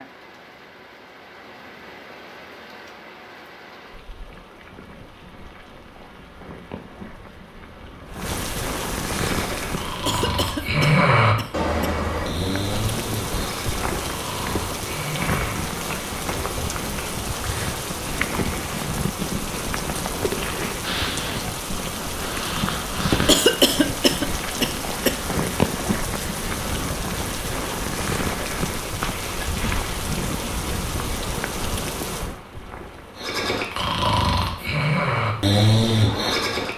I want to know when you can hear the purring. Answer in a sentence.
The purring can't be heard in this clip.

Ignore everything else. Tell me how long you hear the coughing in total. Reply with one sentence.
The coughing can be heard for 4 seconds in total.